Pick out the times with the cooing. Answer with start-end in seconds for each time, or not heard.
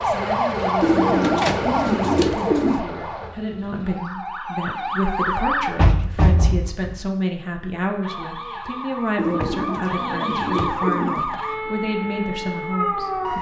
0.8-2.9, 9.2-11.2.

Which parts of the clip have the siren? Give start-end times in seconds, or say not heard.
0.0-5.7, 8.0-13.3.